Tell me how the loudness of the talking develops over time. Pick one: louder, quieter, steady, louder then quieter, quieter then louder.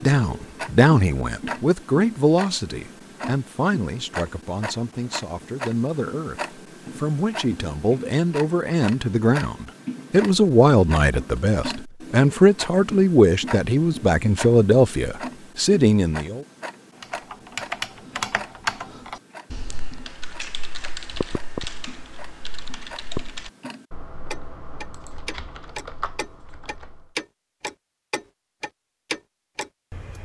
quieter then louder.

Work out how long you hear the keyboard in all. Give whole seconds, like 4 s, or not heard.
10 s.